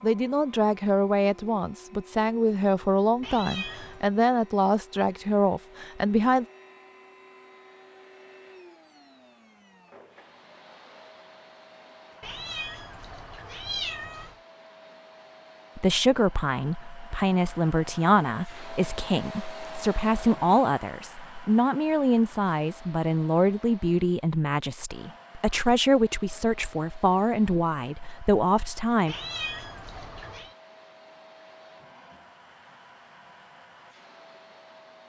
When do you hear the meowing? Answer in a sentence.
You can hear the meowing from 3.2 to 4.1 s, from 12.2 to 14.4 s and from 29.1 to 30.6 s.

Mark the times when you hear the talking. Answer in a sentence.
The talking can be heard from 0.0 to 6.5 s and from 15.8 to 29.1 s.